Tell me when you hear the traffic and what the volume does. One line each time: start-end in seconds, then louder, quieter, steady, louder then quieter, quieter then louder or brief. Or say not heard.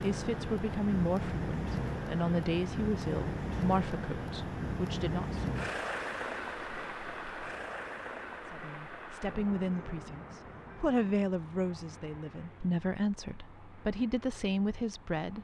0.0-15.4 quieter.